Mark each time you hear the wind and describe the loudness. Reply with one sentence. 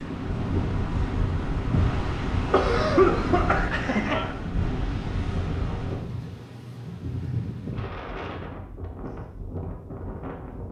You can hear the wind from 0.0 to 10.6 s, getting quieter.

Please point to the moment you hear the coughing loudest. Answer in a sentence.
The loudest moment of the coughing is at 3 seconds.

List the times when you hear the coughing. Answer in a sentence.
You can hear the coughing from 2.5 to 4.3 s.